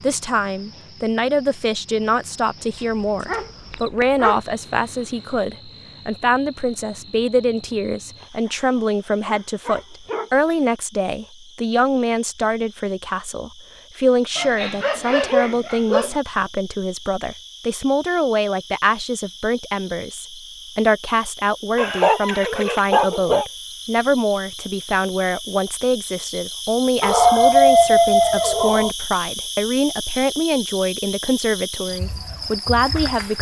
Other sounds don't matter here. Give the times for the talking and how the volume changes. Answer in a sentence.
You can hear the talking from 0.0 to 33.3 s, at a steady volume.